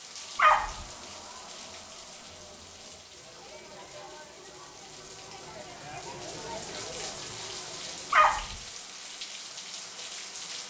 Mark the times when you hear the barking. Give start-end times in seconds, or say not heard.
0.3-0.8, 8.1-8.6.